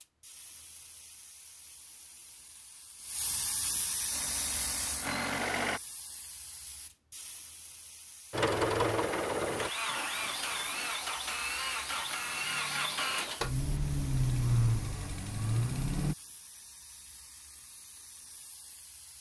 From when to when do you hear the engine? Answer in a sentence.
The engine can be heard from 4.1 to 5.8 s and from 8.3 to 16.1 s.